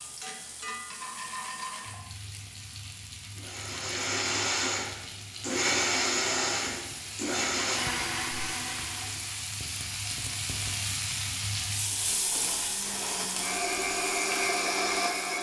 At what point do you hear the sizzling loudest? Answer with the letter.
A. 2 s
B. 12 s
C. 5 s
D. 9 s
B.